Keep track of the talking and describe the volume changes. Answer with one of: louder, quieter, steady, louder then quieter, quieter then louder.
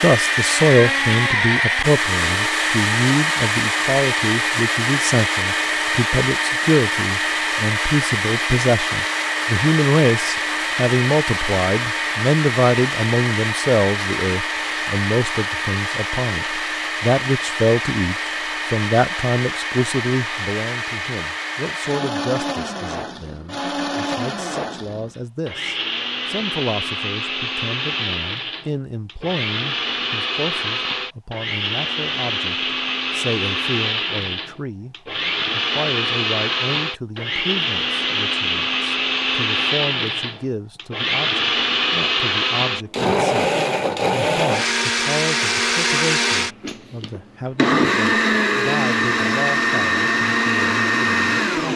quieter.